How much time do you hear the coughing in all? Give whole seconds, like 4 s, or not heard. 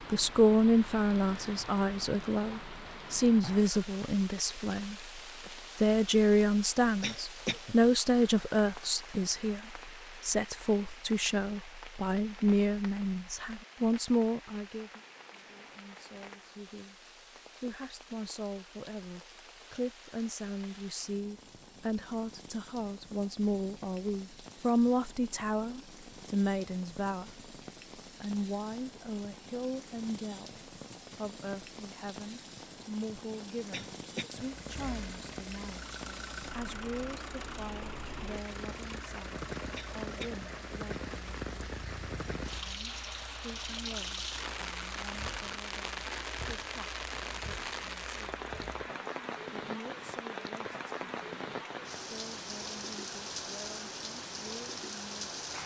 2 s.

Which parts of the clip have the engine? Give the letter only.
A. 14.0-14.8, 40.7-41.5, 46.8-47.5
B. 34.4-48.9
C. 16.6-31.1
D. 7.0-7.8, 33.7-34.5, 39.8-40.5
B.